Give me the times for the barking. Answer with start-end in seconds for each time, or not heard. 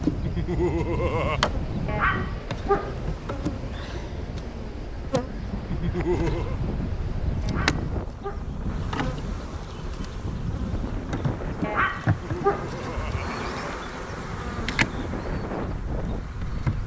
1.9-3.1, 7.4-8.6, 11.6-12.9.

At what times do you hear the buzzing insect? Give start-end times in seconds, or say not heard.
0.0-16.8.